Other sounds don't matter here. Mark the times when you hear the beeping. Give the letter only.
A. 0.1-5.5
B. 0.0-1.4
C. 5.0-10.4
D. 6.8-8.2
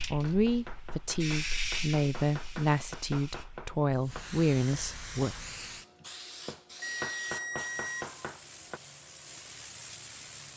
D.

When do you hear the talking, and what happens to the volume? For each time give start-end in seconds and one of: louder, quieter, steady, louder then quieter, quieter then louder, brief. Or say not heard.
0.1-5.5 steady.